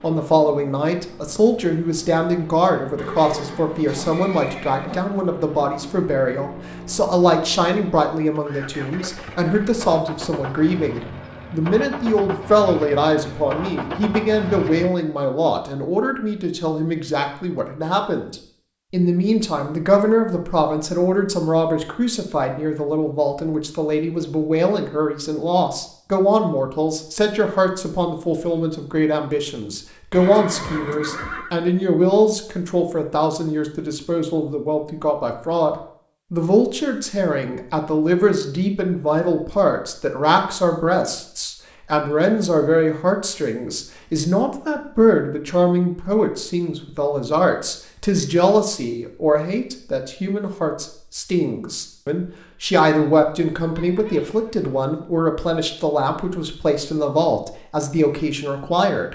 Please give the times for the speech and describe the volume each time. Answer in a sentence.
You can hear the speech from 0.0 to 59.1 s, at a steady volume.